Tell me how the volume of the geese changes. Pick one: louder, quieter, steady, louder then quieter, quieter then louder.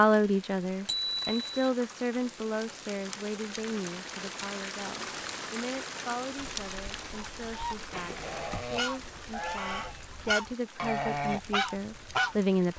louder.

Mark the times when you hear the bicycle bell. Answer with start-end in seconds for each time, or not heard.
0.8-1.7, 7.9-8.7.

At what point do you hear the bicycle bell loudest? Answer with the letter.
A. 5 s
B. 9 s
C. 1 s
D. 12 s
C.